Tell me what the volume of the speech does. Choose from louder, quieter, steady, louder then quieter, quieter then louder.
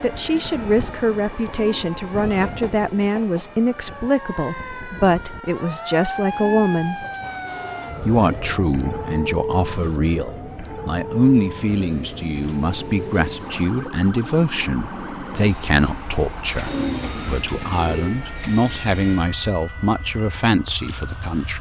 steady.